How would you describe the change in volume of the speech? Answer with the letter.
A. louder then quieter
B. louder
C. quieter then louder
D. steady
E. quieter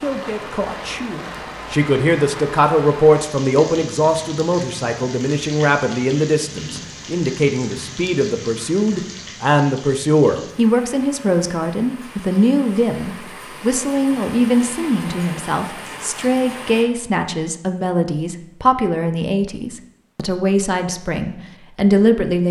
D.